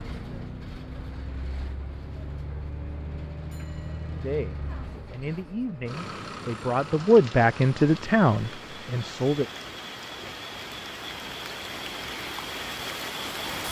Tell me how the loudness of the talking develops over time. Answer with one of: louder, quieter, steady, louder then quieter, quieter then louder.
louder.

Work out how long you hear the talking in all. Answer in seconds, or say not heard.
5 s.